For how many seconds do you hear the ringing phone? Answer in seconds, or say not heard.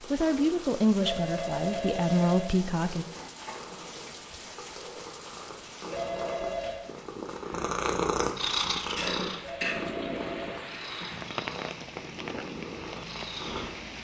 4 s.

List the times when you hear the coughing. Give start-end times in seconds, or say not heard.
8.9-9.8.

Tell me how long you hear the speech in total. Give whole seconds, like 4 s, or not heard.
3 s.